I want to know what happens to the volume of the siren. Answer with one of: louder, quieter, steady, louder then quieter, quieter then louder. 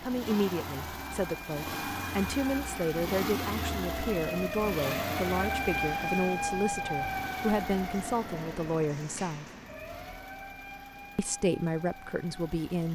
louder then quieter.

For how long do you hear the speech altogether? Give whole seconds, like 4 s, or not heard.
11 s.